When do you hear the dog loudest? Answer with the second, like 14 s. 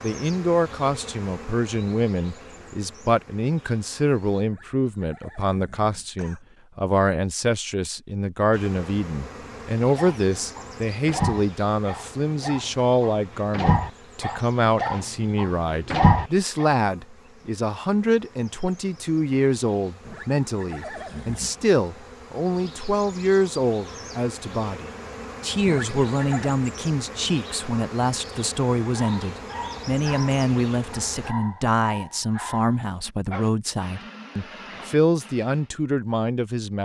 16 s.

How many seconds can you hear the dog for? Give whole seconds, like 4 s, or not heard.
14 s.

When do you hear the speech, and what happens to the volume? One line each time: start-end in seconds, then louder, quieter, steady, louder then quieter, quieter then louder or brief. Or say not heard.
0.0-36.8 steady.